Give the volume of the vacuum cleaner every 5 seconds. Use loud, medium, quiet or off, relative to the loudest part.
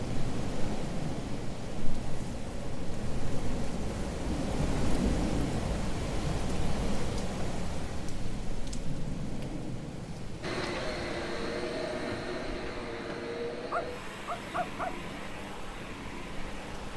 off, off, loud, medium.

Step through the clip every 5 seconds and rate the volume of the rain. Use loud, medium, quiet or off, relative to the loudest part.
loud, loud, medium, quiet.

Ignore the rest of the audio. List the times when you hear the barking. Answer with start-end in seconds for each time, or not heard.
13.7-14.9.